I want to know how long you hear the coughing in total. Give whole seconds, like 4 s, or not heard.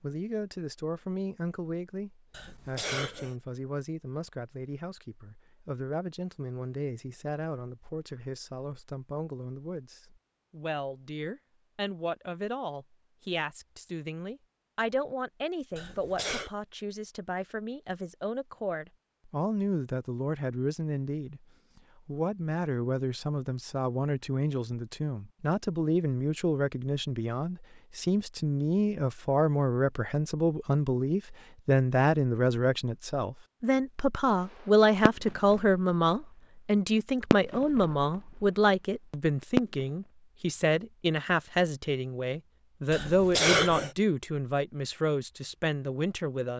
3 s.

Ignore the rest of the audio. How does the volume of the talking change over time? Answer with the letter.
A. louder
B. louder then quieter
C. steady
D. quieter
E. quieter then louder
A.